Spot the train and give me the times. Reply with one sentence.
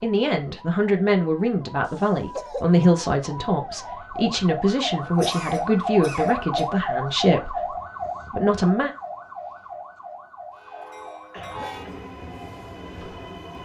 You can hear the train from 10.6 to 13.6 s.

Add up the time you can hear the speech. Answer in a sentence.
You can hear the speech for 9 seconds altogether.